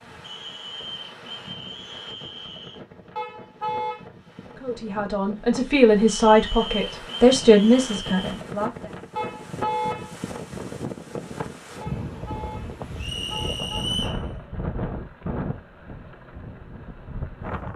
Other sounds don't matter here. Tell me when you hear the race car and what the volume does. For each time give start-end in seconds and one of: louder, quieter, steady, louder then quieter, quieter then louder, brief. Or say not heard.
not heard.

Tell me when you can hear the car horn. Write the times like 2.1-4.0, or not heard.
3.1-4.0, 9.2-10.2, 11.8-13.8.